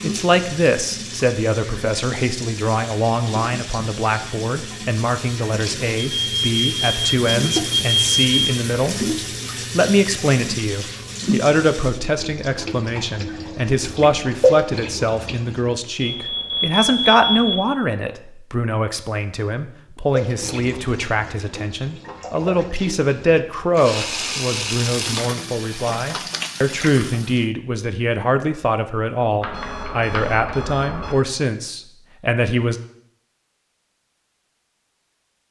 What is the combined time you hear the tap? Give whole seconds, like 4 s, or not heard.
23 s.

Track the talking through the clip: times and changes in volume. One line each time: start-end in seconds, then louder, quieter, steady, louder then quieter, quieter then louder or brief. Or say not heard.
0.0-32.8 steady.